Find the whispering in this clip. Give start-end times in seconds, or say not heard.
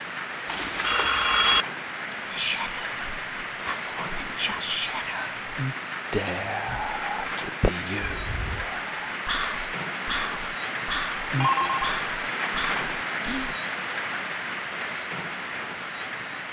2.3-13.6.